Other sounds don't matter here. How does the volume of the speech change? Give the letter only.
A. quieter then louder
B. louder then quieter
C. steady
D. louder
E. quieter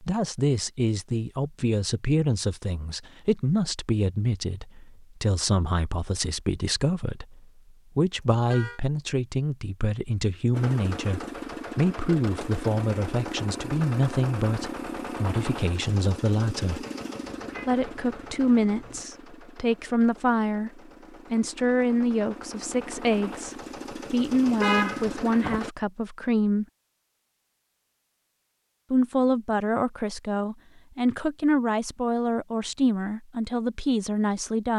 C.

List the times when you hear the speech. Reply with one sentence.
The speech can be heard from 0.0 to 16.9 s, from 17.6 to 26.6 s and from 28.9 to 34.7 s.